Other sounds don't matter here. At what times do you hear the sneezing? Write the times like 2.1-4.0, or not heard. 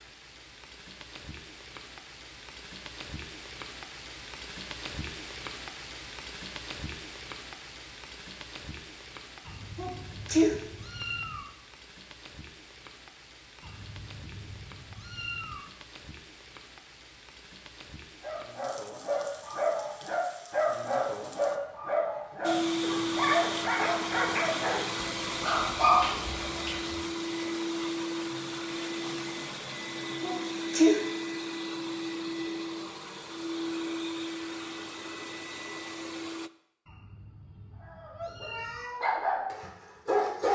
9.8-10.6, 30.2-31.0.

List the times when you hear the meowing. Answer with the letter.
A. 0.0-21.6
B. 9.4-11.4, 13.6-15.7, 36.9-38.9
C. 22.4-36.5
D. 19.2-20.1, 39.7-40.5
B.